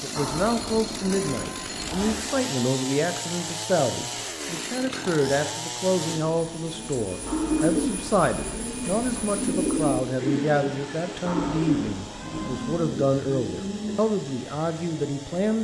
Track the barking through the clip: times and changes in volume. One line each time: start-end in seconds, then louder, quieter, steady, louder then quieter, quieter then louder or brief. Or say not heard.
not heard.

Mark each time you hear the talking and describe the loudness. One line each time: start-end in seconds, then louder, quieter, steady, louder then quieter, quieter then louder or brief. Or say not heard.
0.0-15.5 steady.